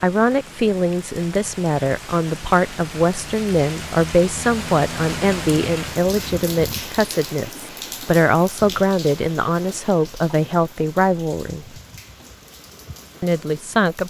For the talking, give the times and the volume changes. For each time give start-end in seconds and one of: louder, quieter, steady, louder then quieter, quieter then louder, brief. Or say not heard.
0.0-11.7 steady
13.2-14.0 brief.